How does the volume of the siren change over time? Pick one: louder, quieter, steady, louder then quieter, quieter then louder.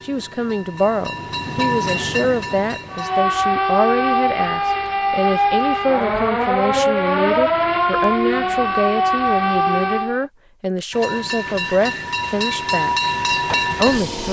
steady.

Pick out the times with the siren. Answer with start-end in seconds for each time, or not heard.
2.9-10.3.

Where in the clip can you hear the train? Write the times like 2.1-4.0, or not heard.
0.0-3.2, 10.9-14.2.